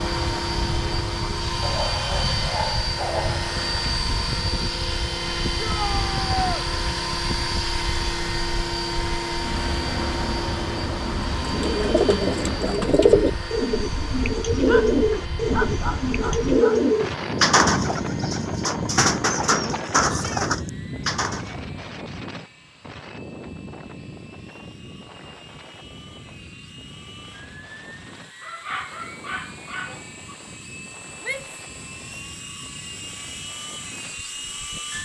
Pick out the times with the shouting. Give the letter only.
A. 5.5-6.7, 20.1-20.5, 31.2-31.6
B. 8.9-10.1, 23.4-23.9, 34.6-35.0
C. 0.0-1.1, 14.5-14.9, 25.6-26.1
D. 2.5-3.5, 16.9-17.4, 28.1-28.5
A.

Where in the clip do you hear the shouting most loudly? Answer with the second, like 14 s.
6 s.